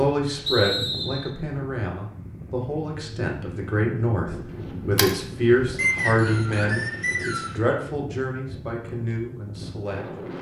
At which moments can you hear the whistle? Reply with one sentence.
You can hear the whistle from 0.5 to 1.3 s and from 5.8 to 7.6 s.